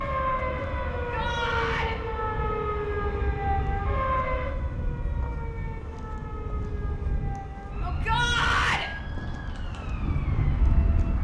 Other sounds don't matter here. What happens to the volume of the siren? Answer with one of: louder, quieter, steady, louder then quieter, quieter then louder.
quieter.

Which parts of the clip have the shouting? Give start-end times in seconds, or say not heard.
0.9-1.9, 7.8-8.9.